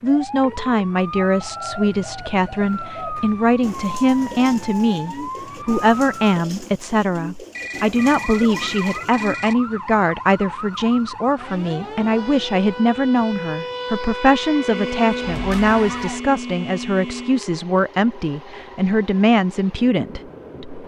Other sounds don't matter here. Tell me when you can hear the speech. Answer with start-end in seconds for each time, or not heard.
0.0-20.8.